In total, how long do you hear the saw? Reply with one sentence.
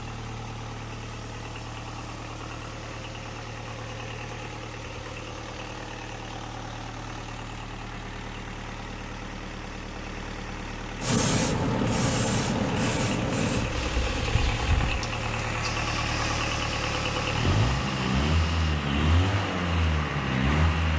You can't hear the saw here.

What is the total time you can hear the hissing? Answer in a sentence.
You can hear the hissing for 8 seconds altogether.